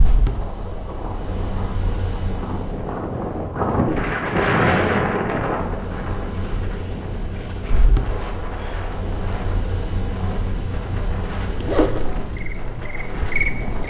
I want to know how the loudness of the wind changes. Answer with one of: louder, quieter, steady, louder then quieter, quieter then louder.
louder then quieter.